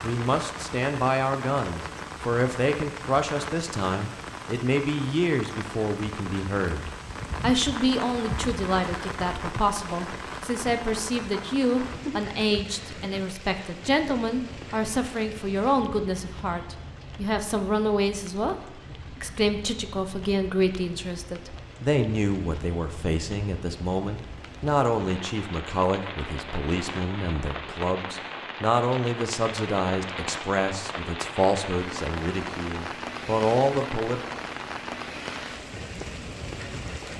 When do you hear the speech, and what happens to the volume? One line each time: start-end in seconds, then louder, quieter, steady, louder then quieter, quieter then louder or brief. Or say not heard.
0.0-34.2 steady.